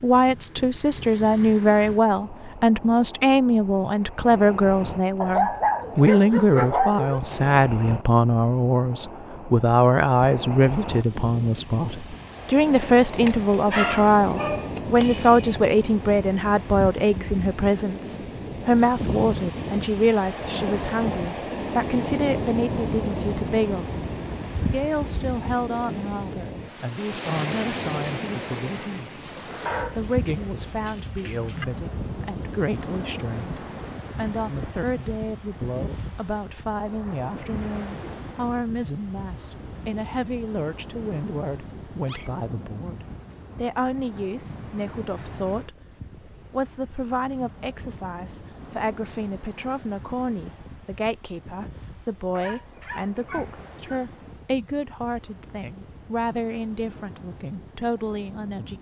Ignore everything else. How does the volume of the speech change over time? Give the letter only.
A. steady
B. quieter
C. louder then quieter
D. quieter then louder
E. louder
B.